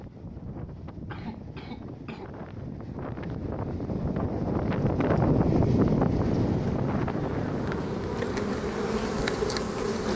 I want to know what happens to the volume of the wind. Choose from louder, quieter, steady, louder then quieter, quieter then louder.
louder then quieter.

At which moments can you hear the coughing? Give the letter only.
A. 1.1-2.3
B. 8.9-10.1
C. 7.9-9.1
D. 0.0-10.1
A.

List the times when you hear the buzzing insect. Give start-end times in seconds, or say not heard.
6.2-10.1.